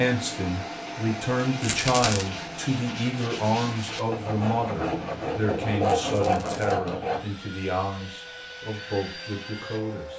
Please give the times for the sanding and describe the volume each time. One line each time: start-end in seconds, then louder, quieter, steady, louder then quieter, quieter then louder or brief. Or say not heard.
1.3-7.2 louder.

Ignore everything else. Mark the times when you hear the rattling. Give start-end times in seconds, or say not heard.
1.6-2.2, 6.0-6.8.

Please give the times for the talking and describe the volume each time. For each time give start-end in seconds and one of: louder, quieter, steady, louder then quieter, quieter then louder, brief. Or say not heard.
0.0-10.1 quieter.